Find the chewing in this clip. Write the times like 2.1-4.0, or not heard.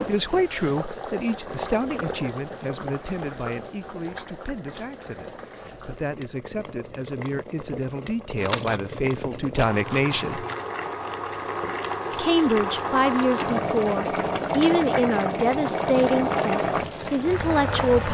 8.3-10.7.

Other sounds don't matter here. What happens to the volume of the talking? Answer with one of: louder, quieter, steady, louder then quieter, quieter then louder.
quieter then louder.